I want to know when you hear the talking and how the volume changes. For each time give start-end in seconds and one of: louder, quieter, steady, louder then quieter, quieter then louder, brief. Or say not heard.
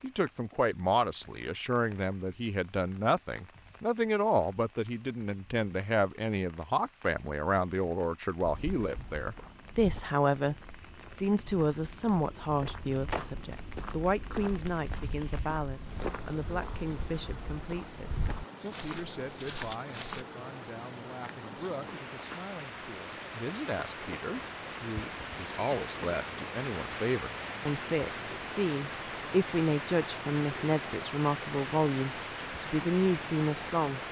0.0-10.6 steady
11.2-34.0 quieter then louder.